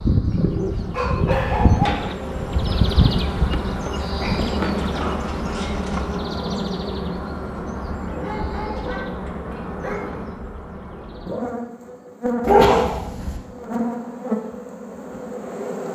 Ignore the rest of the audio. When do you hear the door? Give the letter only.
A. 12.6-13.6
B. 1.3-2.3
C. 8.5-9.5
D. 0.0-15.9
B.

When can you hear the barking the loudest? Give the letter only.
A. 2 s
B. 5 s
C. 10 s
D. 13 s
D.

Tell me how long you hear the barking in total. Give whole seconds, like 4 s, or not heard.
6 s.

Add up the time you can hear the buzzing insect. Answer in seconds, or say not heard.
16 s.